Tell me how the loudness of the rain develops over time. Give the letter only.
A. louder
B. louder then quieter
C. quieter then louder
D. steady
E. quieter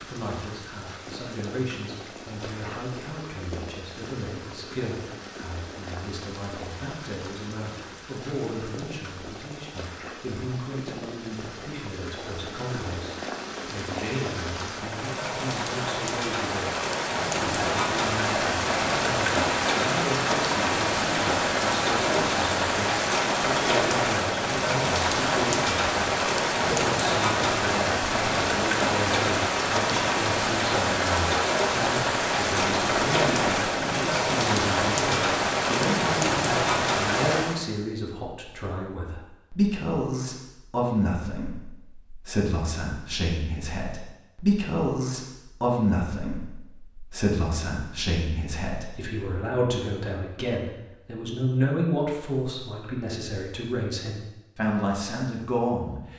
A.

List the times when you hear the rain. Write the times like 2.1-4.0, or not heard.
0.0-37.6.